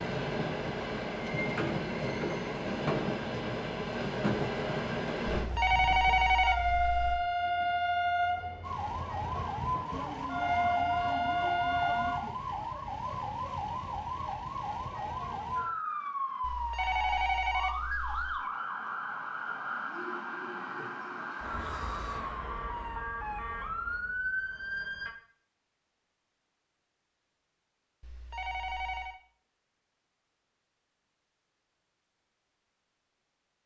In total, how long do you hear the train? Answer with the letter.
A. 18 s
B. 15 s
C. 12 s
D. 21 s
C.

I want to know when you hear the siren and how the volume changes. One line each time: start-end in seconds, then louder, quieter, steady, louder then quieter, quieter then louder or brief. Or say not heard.
8.6-25.1 steady.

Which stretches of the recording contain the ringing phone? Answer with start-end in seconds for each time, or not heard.
5.3-7.2, 16.4-18.4, 28.0-29.2.